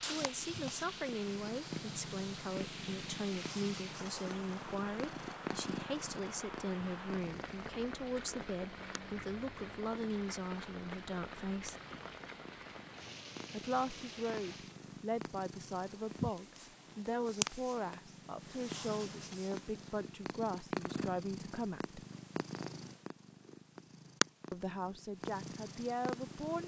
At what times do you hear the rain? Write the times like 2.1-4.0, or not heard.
0.1-14.8.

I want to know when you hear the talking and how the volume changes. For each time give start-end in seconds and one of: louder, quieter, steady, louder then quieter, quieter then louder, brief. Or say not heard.
0.1-11.8 steady
13.5-22.1 steady
24.5-26.6 brief.